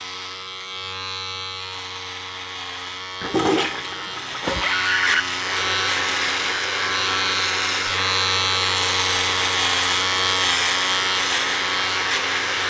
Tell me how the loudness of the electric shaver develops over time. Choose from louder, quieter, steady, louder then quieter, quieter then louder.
louder.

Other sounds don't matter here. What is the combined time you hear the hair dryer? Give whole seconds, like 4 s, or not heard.
7 s.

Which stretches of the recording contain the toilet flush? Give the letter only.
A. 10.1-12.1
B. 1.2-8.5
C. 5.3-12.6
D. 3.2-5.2
D.